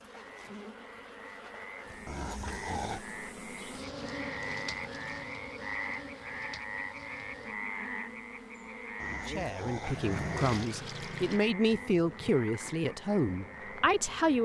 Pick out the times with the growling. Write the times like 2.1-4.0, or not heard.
2.0-3.0, 9.0-10.7.